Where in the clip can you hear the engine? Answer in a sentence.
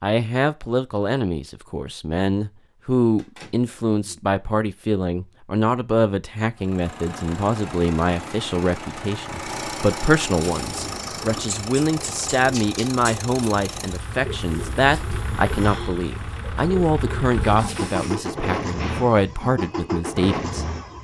The engine can be heard from 6.5 to 20.9 s.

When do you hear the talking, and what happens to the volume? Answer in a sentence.
You can hear the talking from 0.0 to 20.6 s, at a steady volume.